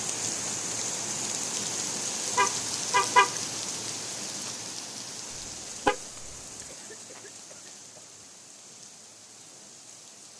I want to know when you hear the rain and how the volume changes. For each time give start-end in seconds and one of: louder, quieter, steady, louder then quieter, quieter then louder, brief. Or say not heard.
0.0-10.3 quieter.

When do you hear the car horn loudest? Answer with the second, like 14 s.
3 s.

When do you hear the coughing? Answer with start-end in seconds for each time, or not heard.
6.6-8.2.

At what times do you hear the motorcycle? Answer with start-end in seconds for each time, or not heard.
not heard.